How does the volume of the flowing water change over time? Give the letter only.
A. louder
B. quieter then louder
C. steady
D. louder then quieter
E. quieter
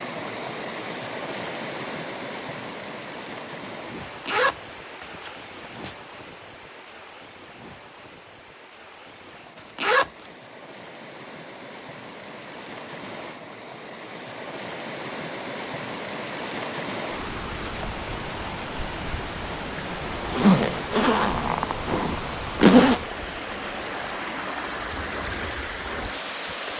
B.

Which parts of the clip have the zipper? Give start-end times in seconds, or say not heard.
4.0-6.0, 9.6-10.3, 20.2-23.0.